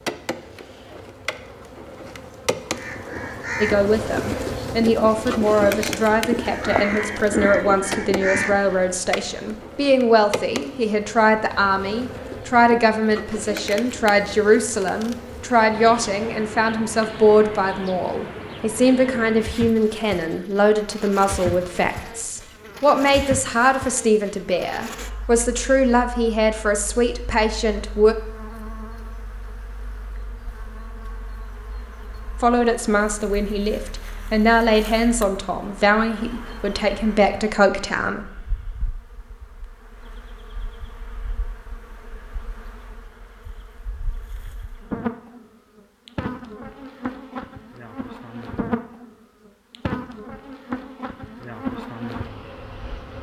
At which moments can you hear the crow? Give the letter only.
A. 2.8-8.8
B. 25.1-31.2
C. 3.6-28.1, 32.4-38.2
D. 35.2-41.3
A.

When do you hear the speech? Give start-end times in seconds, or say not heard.
3.6-28.1, 32.4-38.2.